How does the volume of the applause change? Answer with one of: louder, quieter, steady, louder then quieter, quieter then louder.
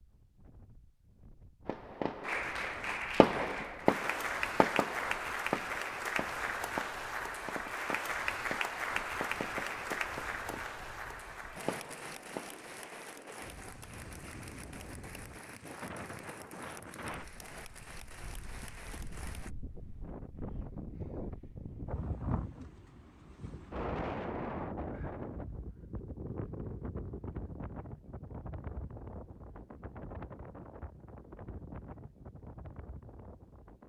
quieter.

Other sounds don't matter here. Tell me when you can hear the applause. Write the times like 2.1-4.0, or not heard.
2.2-19.5.